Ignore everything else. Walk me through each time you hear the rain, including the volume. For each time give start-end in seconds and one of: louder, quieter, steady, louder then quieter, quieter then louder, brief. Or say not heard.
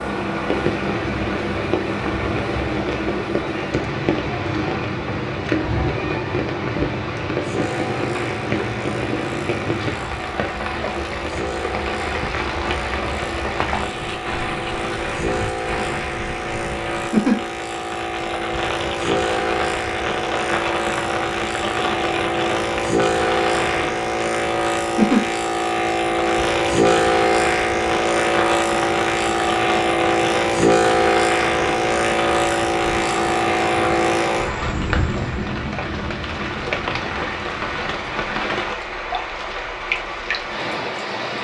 0.0-41.4 steady.